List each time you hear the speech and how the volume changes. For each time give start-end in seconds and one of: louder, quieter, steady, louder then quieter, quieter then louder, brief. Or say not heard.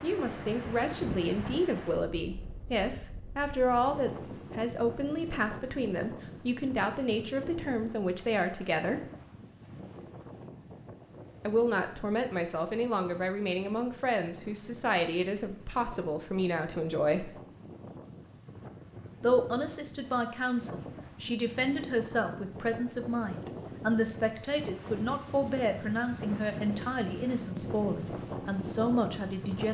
0.0-9.0 steady
11.4-17.4 steady
19.2-29.7 steady.